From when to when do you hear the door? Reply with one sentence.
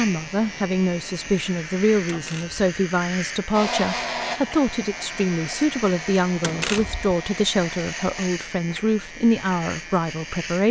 You can hear the door from 2.0 to 2.6 s and from 6.4 to 7.2 s.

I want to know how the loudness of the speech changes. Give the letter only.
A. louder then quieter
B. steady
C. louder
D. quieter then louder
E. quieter
B.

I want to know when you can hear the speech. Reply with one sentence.
You can hear the speech from 0.0 to 10.6 s.